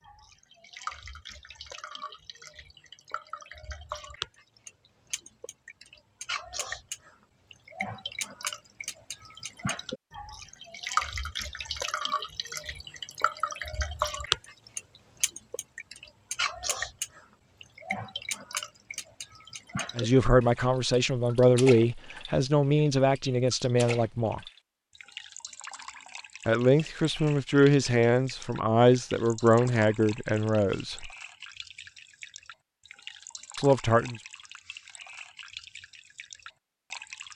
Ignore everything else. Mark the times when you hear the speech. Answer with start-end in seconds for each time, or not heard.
19.9-24.4, 26.4-31.1, 33.5-34.2.